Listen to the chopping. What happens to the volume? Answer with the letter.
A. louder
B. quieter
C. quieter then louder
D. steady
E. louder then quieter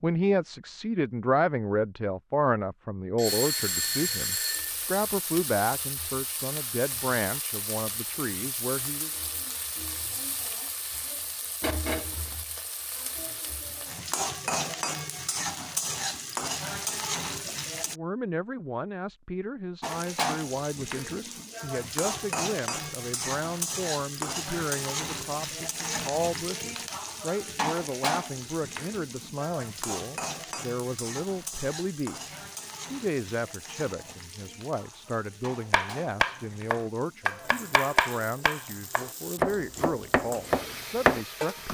C.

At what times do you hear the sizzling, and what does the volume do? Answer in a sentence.
The sizzling can be heard from 3.2 to 17.9 s, getting louder; and from 19.8 to 41.7 s, getting quieter.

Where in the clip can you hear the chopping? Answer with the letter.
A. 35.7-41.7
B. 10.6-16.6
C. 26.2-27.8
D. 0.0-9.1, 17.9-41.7
A.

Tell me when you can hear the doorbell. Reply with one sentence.
The doorbell can be heard from 3.1 to 4.7 s.